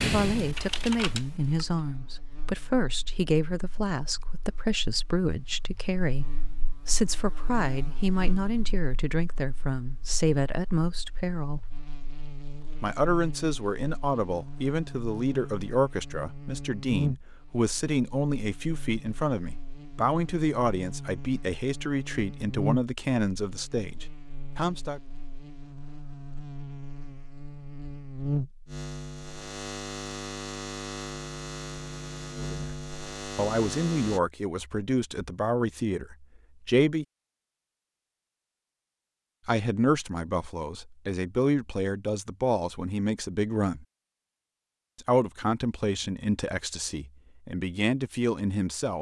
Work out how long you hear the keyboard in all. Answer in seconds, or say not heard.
2 s.